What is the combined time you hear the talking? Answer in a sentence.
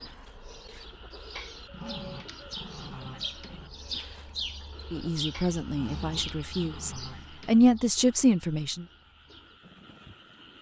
You can hear the talking for 4 seconds altogether.